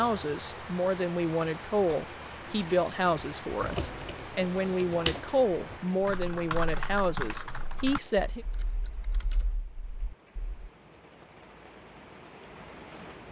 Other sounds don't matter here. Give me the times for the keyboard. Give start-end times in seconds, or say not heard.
3.5-10.7.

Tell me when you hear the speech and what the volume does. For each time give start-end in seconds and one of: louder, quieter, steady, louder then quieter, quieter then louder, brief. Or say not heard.
0.0-8.4 steady.